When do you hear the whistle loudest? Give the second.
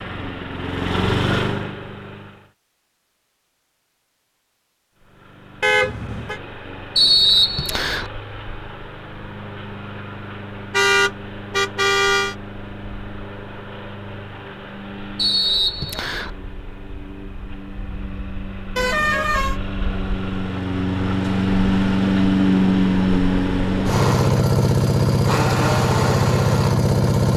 7 s.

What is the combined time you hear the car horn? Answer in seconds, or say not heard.
3 s.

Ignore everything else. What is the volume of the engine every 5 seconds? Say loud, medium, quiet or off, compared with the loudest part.
medium, quiet, quiet, quiet, loud, loud.